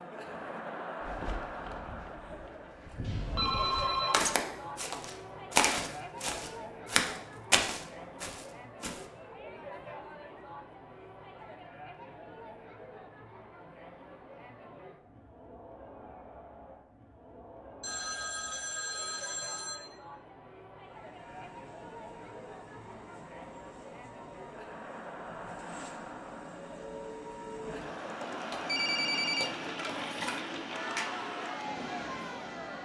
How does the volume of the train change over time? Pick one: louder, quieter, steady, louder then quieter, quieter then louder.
louder.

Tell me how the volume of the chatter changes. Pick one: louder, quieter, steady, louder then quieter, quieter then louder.
quieter then louder.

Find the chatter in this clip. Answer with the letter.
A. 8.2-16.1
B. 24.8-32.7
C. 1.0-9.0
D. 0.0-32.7
D.